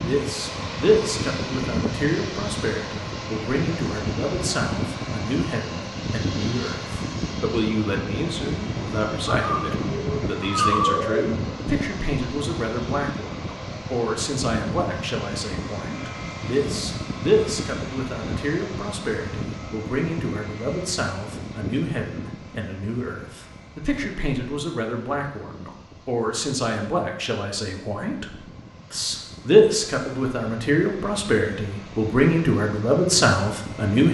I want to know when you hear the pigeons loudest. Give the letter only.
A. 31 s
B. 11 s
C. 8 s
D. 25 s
B.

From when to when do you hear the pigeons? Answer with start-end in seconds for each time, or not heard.
9.2-11.2.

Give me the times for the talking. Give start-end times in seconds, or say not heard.
0.0-34.0.